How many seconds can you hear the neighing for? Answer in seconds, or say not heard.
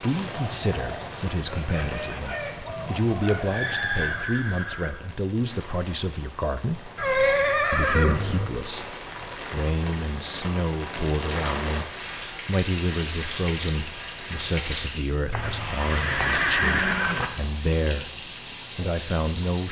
6 s.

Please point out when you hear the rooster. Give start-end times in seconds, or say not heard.
0.2-4.2.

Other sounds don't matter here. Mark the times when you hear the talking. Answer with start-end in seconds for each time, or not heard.
0.0-6.9, 7.7-11.8, 12.4-19.6.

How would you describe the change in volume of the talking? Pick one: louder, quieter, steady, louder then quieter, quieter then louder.
steady.